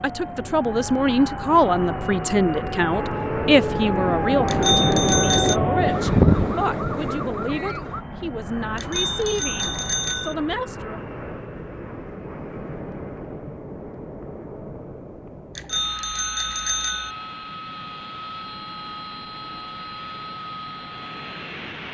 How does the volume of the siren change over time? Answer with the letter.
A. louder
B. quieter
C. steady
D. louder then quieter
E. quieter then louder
A.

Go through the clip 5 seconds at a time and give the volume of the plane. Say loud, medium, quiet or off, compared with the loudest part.
loud, loud, medium, medium, medium.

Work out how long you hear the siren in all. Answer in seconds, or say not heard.
8 s.